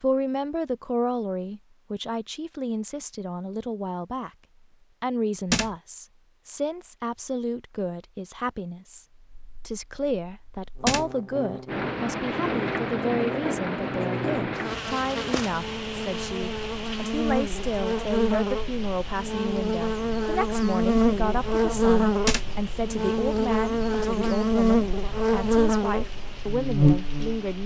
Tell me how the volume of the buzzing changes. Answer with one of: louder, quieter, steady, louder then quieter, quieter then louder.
louder.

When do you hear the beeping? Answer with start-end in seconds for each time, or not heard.
not heard.